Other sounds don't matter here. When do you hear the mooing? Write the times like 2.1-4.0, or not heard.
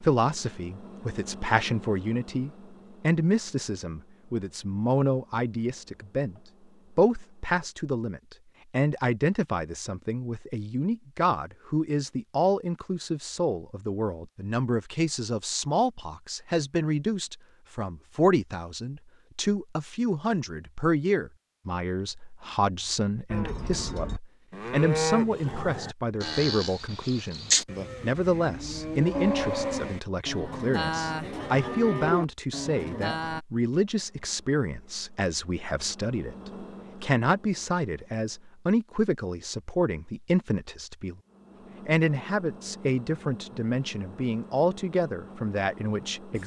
23.3-33.4.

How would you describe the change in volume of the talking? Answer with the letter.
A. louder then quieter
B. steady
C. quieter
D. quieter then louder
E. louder
B.